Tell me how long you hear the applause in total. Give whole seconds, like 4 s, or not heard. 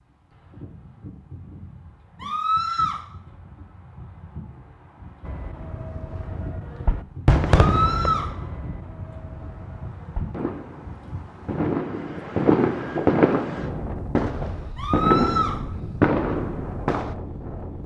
not heard.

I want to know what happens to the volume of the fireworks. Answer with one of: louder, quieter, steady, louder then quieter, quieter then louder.
quieter then louder.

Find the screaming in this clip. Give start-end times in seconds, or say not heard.
2.2-3.0, 7.5-8.3, 14.8-15.6.